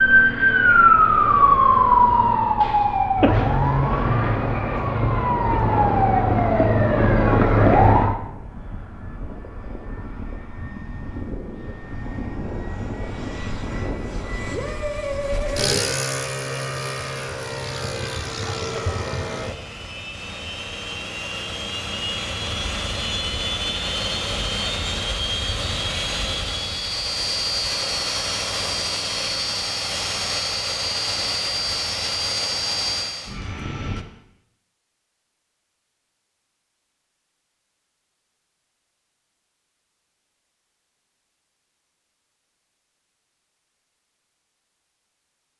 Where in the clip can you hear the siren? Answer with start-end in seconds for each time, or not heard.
0.0-8.2.